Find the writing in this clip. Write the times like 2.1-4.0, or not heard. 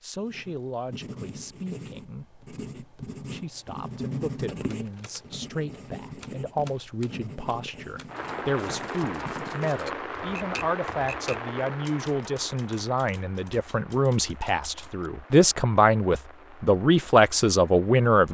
0.2-9.7.